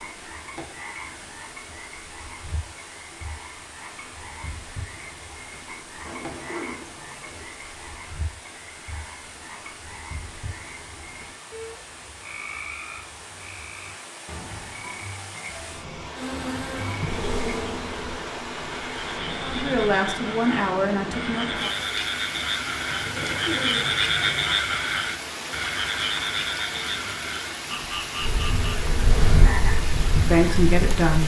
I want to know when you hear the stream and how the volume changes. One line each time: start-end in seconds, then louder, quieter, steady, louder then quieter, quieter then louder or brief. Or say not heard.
0.0-31.2 louder.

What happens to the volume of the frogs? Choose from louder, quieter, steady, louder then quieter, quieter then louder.
louder.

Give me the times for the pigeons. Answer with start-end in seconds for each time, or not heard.
6.0-7.5, 22.9-24.4.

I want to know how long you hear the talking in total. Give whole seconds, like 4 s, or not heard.
3 s.